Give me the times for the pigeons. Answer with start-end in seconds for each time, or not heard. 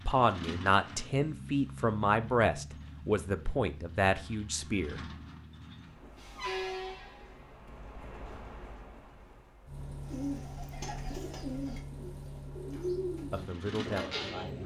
10.1-14.6.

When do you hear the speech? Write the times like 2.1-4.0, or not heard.
0.1-5.0, 13.3-14.6.